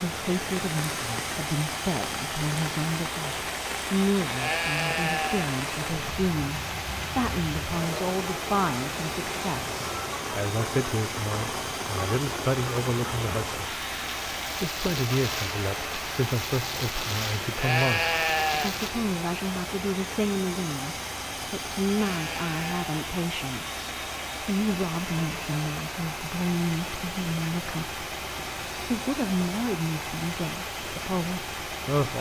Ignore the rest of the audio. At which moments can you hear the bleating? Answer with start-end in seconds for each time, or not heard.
4.3-5.5, 17.6-18.8, 21.9-22.9.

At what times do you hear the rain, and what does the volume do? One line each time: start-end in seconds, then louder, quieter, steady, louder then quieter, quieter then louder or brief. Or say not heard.
0.2-18.9 steady.